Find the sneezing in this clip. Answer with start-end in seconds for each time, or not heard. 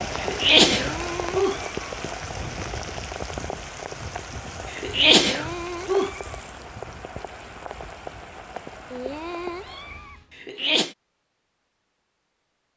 0.1-1.6, 4.7-6.1, 10.3-10.9.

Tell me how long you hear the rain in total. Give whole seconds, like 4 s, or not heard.
10 s.